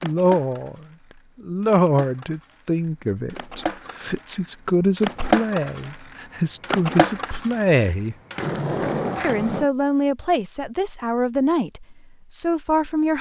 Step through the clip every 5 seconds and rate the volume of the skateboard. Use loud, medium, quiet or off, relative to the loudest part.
medium, loud, off.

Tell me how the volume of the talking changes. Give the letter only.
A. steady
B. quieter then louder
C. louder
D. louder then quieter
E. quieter
A.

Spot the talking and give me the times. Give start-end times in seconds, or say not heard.
0.0-8.2, 9.2-13.1.